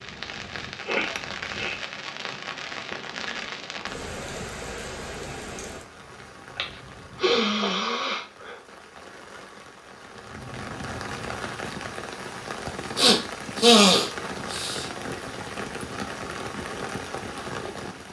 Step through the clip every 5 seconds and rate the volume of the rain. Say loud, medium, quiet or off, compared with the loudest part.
loud, medium, loud, loud.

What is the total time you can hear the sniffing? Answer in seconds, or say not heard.
5 s.